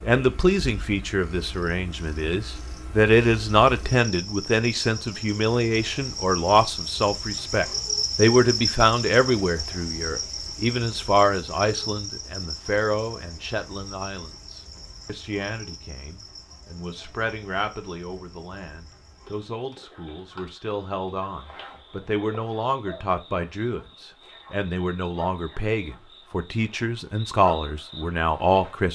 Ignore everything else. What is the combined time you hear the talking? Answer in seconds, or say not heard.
29 s.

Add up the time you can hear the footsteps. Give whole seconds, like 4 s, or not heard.
not heard.